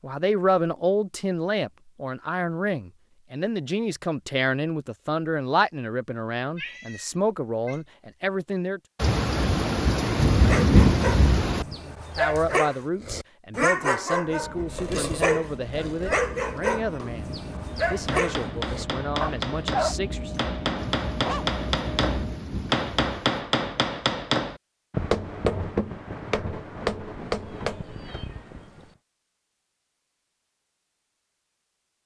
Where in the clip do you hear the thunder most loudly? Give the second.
11 s.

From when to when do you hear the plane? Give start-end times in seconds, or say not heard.
14.2-22.4.